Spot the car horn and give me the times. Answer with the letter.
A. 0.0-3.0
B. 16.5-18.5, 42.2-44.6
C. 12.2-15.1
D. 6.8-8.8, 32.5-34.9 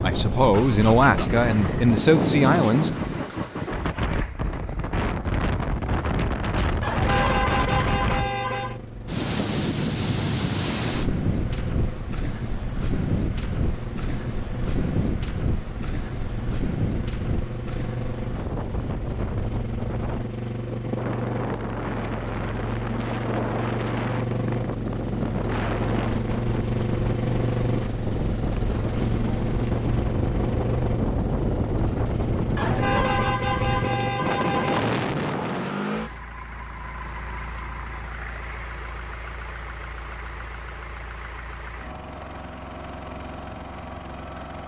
D.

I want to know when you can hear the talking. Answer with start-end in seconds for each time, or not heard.
0.0-3.0.